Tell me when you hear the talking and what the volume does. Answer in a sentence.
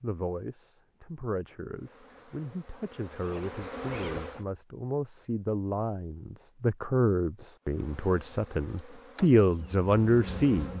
You can hear the talking from 0.0 to 10.7 s, getting louder.